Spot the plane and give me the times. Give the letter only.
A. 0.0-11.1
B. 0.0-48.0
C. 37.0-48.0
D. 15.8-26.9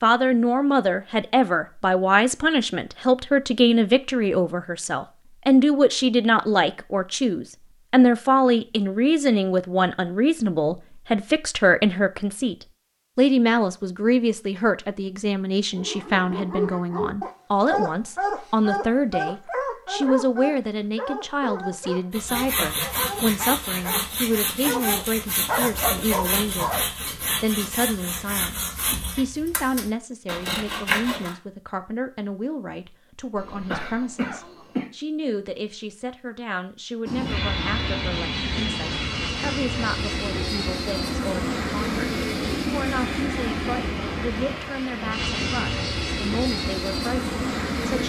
C.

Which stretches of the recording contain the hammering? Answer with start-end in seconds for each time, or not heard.
not heard.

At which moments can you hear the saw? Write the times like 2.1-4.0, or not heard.
22.1-31.4.